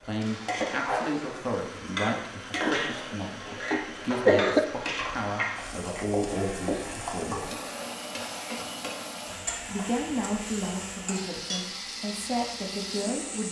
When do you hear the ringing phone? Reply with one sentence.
You can't hear the ringing phone here.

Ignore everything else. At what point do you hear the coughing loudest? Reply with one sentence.
The volume of the coughing peaks at 4 seconds.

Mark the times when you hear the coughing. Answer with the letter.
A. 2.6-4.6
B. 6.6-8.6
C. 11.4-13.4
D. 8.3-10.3
A.